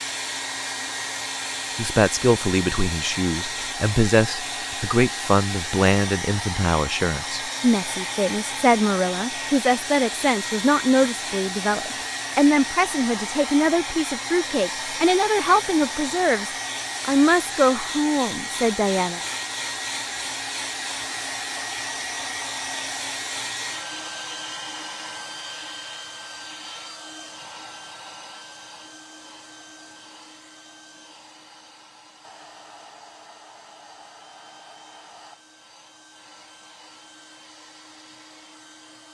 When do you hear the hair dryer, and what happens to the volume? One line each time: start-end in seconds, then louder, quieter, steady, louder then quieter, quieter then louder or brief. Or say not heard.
0.0-39.0 quieter.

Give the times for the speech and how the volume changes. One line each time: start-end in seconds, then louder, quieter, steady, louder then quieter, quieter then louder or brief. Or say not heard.
1.8-19.2 steady.